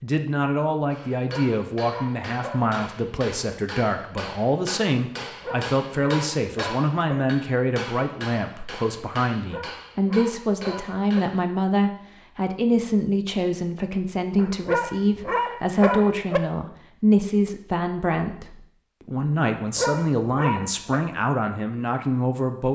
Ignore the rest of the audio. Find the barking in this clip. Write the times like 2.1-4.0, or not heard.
1.2-2.6, 5.2-7.2, 9.4-11.2, 14.3-16.4, 19.6-21.0.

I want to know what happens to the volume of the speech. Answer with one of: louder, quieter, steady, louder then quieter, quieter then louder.
steady.